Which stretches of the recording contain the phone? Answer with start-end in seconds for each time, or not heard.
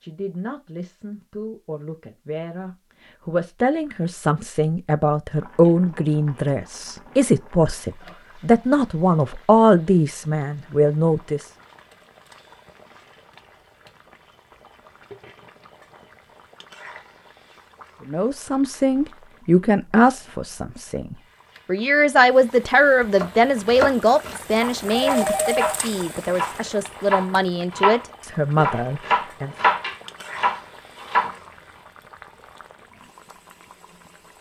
24.9-25.8.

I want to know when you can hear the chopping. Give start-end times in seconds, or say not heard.
23.1-31.4.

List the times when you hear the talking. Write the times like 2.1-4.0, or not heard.
0.0-11.4, 18.1-29.5.